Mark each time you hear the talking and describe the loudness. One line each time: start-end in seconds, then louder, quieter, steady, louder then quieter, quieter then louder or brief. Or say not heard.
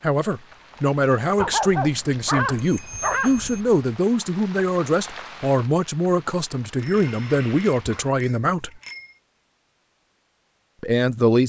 0.0-8.7 steady
10.8-11.4 brief.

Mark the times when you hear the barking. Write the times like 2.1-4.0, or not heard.
1.4-3.8, 6.9-8.6.